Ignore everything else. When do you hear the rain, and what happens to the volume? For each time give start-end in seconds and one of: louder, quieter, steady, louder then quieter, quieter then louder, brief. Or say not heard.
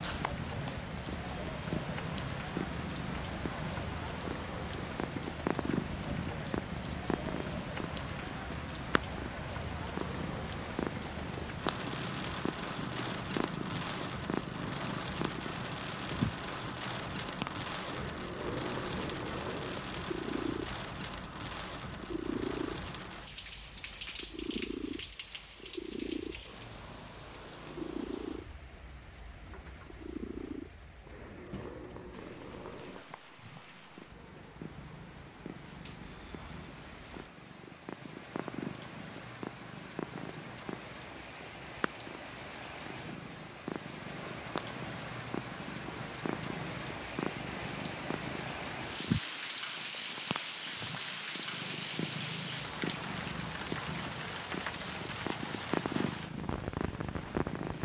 0.0-57.7 quieter then louder.